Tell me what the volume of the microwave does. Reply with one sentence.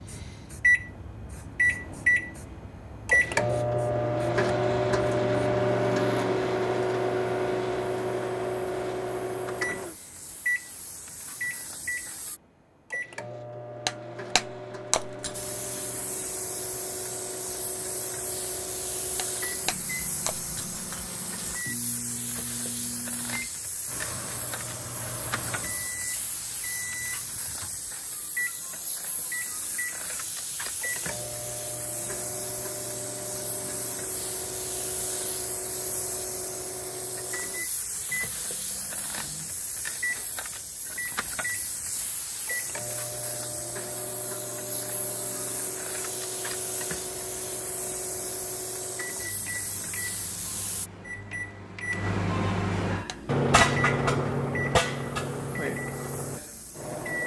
The volume of the microwave goes down, then up.